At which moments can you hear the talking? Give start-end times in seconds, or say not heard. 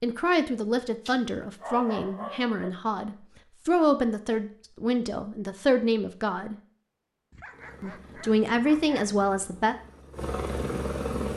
0.0-6.5, 7.8-9.8.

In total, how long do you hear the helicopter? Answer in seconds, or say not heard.
4 s.